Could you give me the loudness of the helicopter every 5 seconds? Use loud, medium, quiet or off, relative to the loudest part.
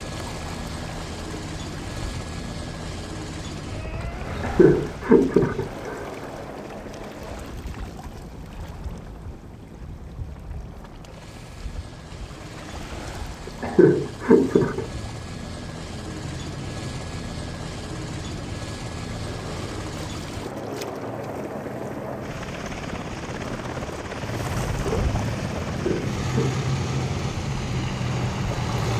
loud, medium, medium, loud, loud, loud.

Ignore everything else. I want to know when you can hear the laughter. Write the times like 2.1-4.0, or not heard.
4.4-6.0, 13.6-14.8, 25.7-26.6.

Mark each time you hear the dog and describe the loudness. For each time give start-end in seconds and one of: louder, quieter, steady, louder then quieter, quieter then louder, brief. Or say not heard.
not heard.